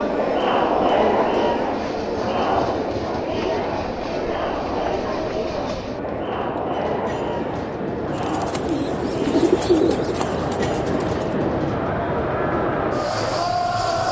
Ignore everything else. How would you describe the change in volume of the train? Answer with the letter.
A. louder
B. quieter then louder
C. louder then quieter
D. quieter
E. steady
A.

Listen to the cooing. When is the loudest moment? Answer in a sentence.
The loudest moment of the cooing is at 10 seconds.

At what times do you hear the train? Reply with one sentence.
You can hear the train from 0.0 to 14.0 s.